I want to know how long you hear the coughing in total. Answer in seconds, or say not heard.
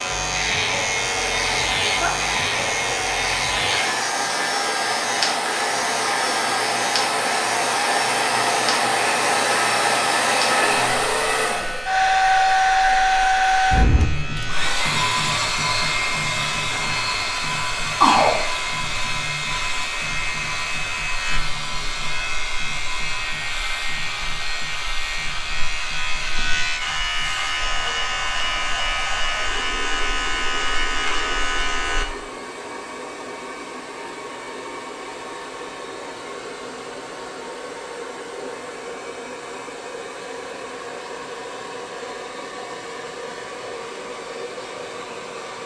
2 s.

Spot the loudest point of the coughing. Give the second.
18 s.